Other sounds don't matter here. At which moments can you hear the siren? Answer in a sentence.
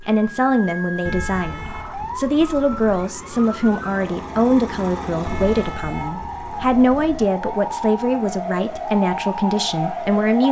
You can hear the siren from 0.0 to 10.4 s.